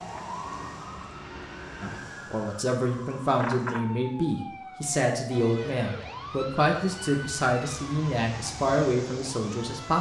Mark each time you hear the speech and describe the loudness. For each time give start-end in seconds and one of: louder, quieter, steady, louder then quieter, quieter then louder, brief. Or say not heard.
1.8-9.9 steady.